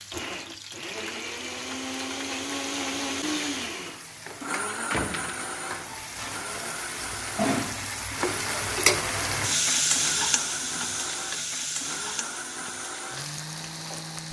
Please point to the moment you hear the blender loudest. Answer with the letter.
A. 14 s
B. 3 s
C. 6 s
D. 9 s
B.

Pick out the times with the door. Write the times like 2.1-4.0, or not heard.
4.9-5.6.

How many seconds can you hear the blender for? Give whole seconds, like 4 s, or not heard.
14 s.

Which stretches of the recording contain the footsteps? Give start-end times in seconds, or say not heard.
not heard.